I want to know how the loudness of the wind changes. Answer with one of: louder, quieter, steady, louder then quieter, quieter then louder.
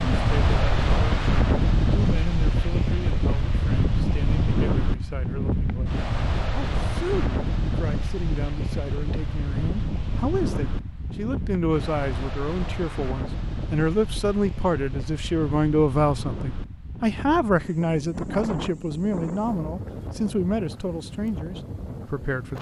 quieter.